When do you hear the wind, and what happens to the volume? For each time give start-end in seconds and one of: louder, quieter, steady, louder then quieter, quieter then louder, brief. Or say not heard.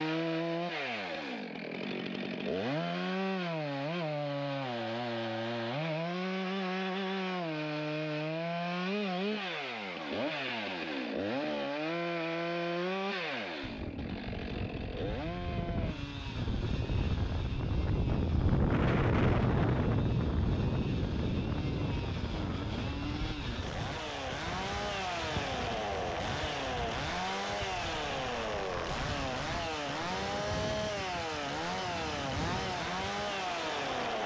13.6-34.2 louder then quieter.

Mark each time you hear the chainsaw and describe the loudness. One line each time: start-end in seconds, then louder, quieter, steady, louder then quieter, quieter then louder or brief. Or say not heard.
0.0-34.2 quieter then louder.